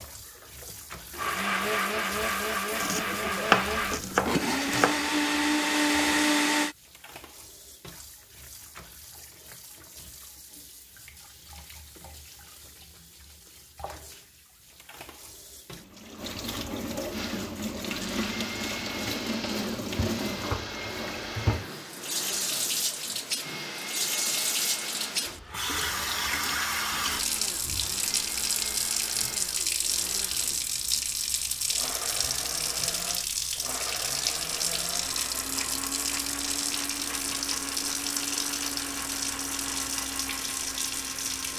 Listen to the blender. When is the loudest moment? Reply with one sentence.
The volume of the blender peaks at 6 seconds.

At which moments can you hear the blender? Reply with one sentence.
You can hear the blender from 0.0 to 6.8 s and from 17.1 to 41.5 s.